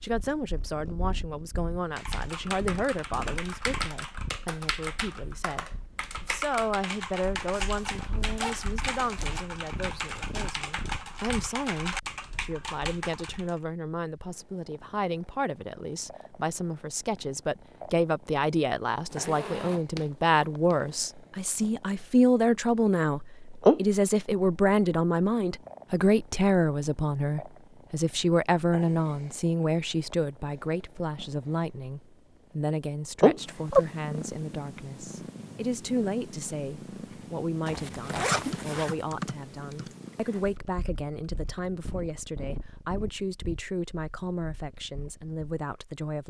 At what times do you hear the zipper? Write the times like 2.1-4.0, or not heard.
7.5-9.4, 19.1-20.9, 37.6-39.0.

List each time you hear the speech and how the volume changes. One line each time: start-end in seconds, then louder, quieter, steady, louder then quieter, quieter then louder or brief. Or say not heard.
0.0-46.2 louder then quieter.